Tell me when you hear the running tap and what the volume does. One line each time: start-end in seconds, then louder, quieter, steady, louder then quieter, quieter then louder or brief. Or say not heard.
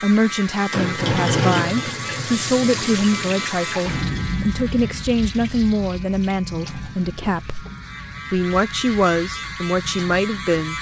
0.0-10.7 quieter.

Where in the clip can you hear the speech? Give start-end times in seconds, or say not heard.
0.0-7.7, 8.3-10.7.